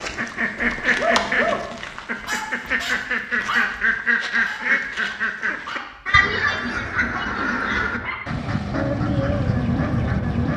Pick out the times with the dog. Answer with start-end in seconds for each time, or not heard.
0.8-10.4.